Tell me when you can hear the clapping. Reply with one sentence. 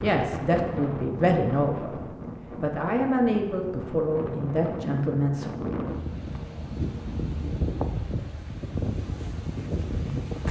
The clapping can't be heard in this clip.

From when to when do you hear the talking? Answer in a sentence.
You can hear the talking from 0.0 to 5.5 s.